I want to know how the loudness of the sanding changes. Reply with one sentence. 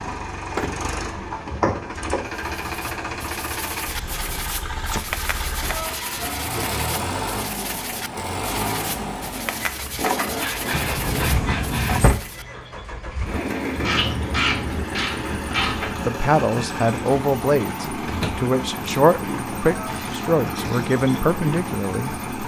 The loudness of the sanding stays about the same.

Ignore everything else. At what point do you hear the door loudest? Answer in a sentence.
The loudest moment of the door is at 12 seconds.